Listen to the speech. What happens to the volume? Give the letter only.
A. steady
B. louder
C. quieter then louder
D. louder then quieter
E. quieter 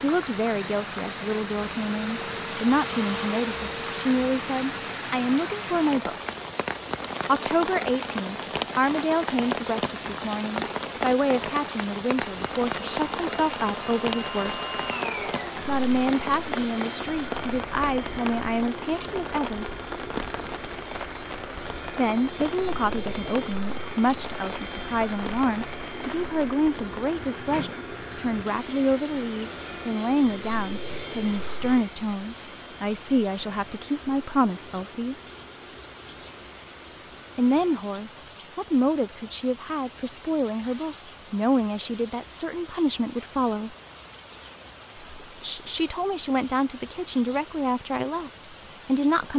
A.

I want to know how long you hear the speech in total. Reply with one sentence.
You can hear the speech for 41 seconds altogether.